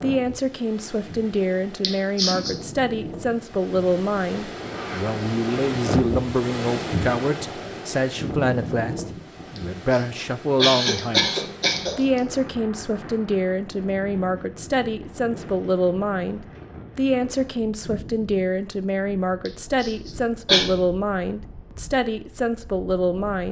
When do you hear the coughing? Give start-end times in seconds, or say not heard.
1.8-2.5, 9.6-12.2, 19.4-20.7.